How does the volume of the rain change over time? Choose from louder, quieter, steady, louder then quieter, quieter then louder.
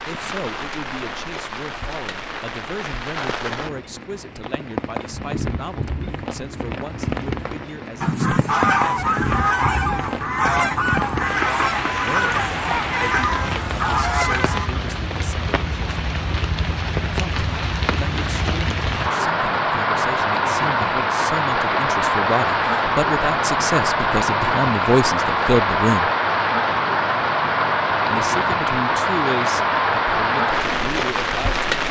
louder.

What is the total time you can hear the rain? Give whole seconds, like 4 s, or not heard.
32 s.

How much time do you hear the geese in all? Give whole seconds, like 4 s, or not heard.
7 s.